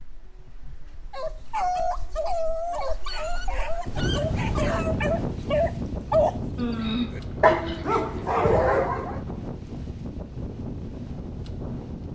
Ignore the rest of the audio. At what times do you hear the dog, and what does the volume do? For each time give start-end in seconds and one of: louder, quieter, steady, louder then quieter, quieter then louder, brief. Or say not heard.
1.1-6.3 quieter then louder
7.1-9.2 brief.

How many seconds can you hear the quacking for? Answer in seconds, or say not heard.
2 s.